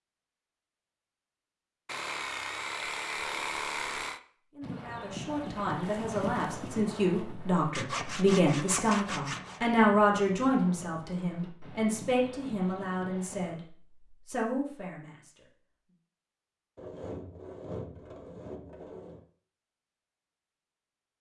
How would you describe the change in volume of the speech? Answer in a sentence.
The loudness of the speech goes up, then down.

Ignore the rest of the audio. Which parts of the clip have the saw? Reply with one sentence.
The saw can be heard from 1.9 to 4.2 s, from 7.8 to 9.6 s and from 16.8 to 19.2 s.